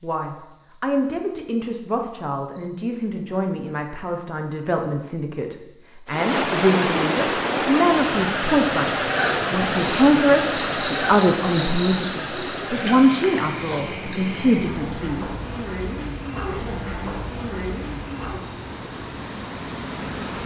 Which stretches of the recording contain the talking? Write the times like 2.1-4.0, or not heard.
0.0-15.3.